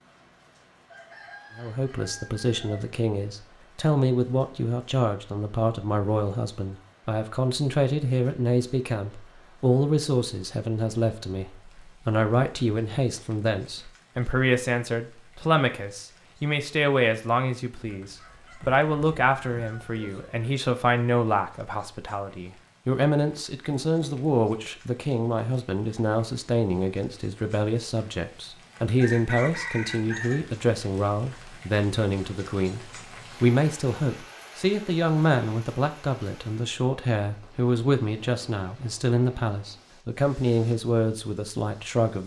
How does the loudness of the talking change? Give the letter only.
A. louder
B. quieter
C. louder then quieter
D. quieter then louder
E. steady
E.